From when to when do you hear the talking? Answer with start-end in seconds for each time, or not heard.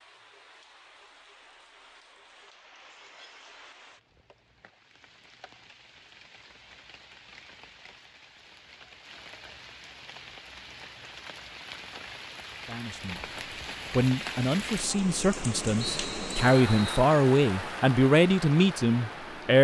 12.7-13.2, 13.9-19.6.